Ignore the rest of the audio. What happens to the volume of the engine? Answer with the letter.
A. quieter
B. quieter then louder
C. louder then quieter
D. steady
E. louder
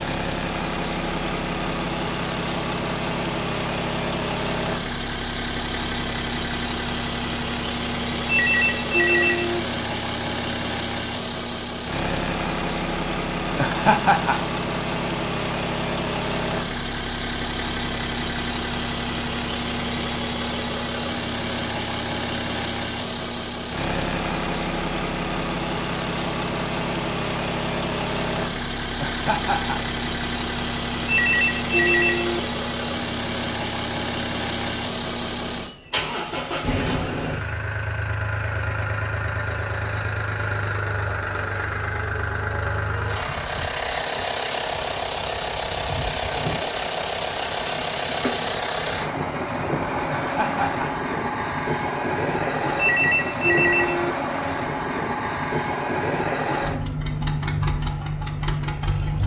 D.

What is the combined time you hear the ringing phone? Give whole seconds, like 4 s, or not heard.
4 s.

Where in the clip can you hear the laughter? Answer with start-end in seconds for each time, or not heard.
13.6-14.4, 28.9-29.8, 50.0-50.9.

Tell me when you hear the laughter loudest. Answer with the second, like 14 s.
14 s.